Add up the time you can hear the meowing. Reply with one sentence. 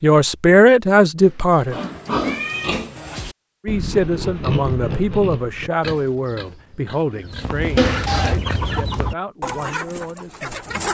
The meowing can be heard for 2 seconds in total.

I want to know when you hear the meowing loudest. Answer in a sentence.
The loudest moment of the meowing is at 8 seconds.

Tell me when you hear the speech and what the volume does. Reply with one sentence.
The speech can be heard briefly from 0.0 to 1.8 s; and from 3.6 to 10.8 s, getting quieter.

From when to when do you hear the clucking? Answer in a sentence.
The clucking can be heard from 7.2 to 10.8 s.